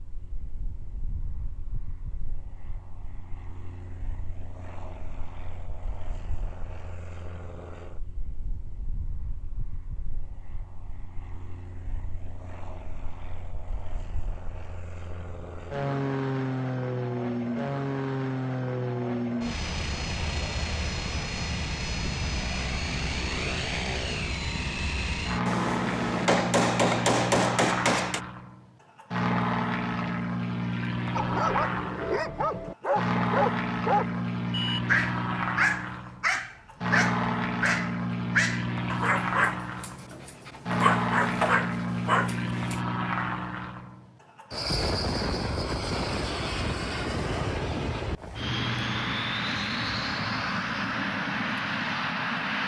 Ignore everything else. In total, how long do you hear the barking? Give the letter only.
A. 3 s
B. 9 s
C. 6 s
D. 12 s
D.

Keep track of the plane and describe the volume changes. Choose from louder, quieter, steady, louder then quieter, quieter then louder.
louder.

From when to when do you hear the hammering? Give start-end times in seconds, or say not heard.
25.4-28.2.